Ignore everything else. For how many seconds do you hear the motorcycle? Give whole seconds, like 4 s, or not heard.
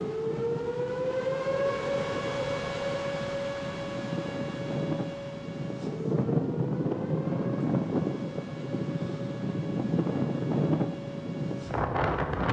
not heard.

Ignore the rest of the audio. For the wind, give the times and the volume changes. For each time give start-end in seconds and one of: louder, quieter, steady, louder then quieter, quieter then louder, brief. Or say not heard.
0.0-12.4 louder.